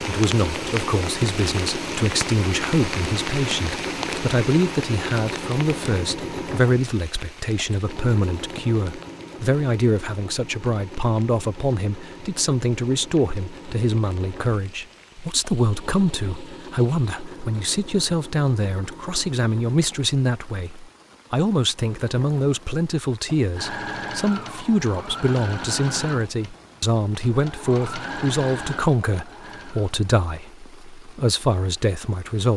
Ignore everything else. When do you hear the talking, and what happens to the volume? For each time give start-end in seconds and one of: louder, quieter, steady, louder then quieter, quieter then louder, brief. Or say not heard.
0.0-32.5 steady.